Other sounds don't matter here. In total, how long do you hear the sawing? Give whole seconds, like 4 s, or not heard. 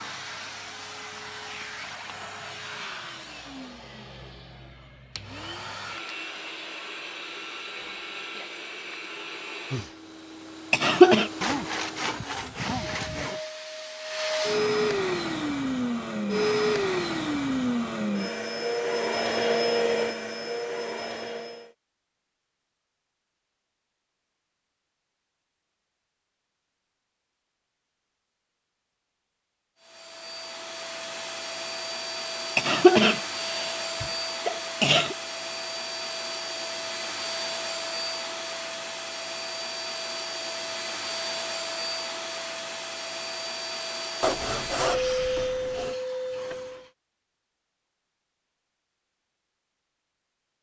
4 s.